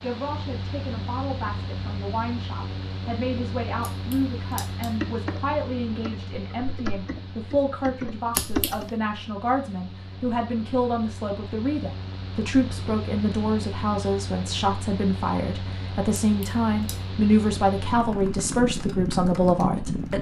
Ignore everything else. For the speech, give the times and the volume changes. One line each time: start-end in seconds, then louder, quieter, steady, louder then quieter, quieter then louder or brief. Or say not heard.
0.0-20.1 louder.